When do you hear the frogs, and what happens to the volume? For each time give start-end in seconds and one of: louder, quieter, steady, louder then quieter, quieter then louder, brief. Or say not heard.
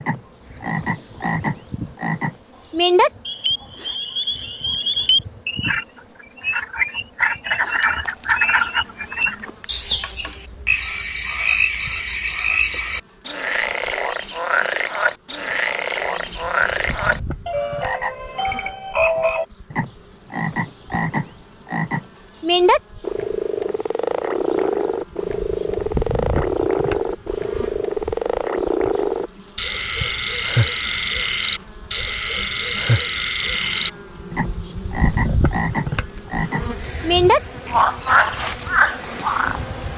0.0-39.9 steady.